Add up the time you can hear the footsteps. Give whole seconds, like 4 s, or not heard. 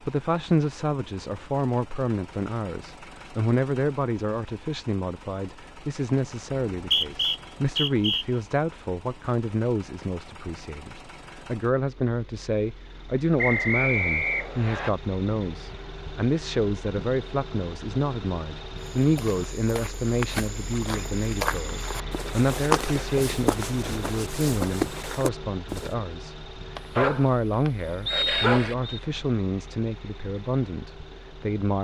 7 s.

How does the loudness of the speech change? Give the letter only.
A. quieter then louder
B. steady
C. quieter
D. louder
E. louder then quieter
B.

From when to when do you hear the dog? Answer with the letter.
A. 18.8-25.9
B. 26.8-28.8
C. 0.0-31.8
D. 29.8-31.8
B.